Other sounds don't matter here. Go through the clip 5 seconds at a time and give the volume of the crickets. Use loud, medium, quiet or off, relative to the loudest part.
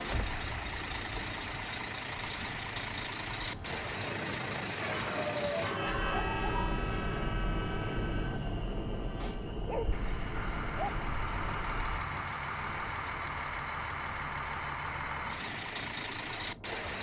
loud, quiet, quiet, off.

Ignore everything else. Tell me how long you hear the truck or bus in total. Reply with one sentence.
The truck or bus can be heard for 17 seconds in total.